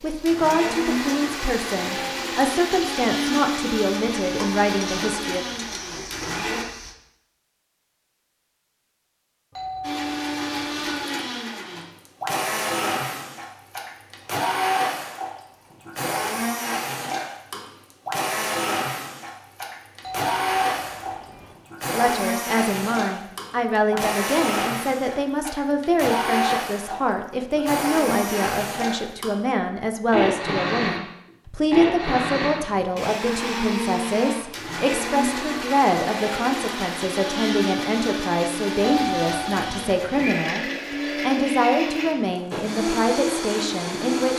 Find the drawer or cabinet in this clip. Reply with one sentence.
The drawer or cabinet can't be heard in this clip.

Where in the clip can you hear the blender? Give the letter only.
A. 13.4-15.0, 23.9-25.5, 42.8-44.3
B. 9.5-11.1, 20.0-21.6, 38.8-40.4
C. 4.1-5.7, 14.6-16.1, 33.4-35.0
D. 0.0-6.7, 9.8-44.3
D.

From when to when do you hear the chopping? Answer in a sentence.
You can't hear the chopping here.